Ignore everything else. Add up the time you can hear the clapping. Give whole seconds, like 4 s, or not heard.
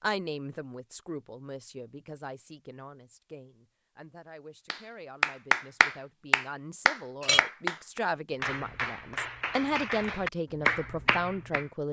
7 s.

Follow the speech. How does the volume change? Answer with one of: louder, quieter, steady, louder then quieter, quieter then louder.
quieter then louder.